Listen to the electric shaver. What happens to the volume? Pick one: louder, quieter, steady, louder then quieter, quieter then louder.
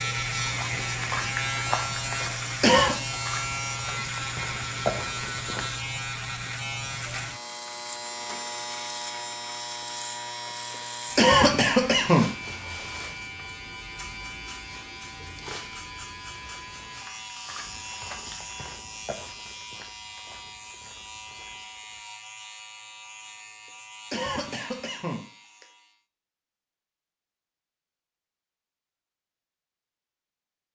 quieter.